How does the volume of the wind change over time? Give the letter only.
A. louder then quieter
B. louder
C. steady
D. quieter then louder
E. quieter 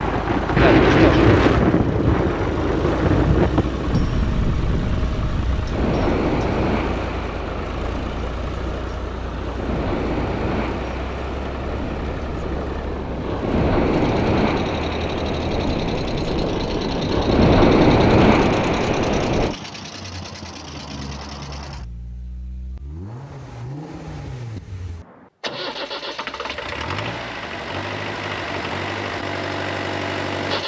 D.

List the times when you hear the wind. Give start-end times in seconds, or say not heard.
0.0-19.6.